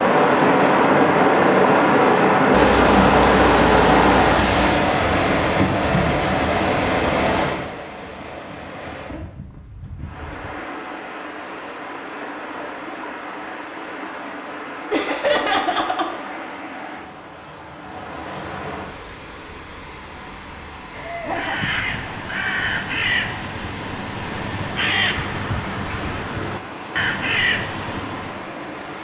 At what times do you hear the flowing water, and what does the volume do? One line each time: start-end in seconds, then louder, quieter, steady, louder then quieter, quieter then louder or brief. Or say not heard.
0.0-28.9 quieter.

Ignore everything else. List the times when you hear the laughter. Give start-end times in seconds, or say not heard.
2.5-4.8, 14.9-16.1, 20.9-21.6.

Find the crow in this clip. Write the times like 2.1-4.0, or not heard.
21.2-28.4.